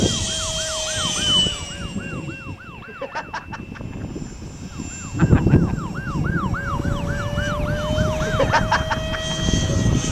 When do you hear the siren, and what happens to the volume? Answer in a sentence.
You can hear the siren from 0.2 to 10.0 s, getting louder.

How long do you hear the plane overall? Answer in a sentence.
You can hear the plane for 10 seconds altogether.